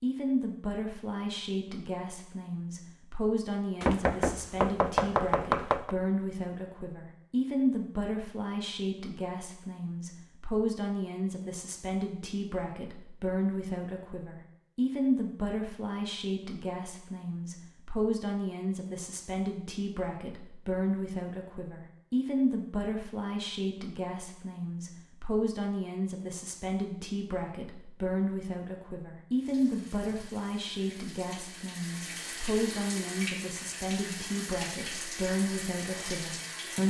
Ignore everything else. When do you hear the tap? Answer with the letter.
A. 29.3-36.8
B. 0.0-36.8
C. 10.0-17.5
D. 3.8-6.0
A.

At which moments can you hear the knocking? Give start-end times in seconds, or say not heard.
3.8-6.0.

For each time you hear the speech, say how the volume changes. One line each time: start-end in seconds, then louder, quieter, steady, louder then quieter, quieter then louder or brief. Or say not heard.
0.0-36.8 steady.